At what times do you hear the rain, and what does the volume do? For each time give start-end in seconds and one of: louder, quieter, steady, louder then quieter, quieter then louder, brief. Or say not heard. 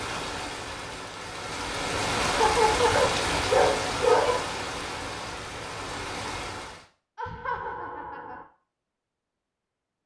0.0-6.8 louder then quieter.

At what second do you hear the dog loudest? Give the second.
4 s.